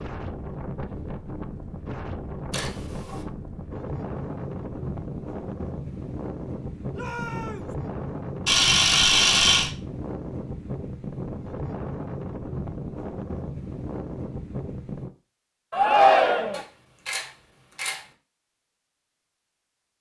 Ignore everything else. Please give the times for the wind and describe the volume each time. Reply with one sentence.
The wind can be heard from 0.0 to 15.1 s, at a steady volume.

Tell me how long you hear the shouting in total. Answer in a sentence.
You can hear the shouting for 2 seconds altogether.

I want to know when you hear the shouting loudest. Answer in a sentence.
The loudest moment of the shouting is at 16 seconds.